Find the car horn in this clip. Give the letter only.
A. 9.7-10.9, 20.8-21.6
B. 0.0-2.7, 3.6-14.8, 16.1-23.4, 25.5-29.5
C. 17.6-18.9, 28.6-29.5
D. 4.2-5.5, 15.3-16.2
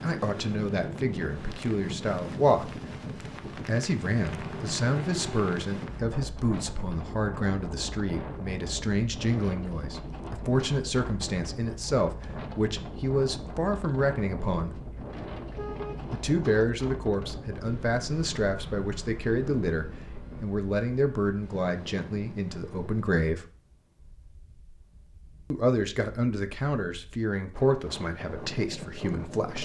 D.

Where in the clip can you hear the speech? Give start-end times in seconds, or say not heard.
0.0-2.7, 3.6-14.8, 16.1-23.4, 25.5-29.5.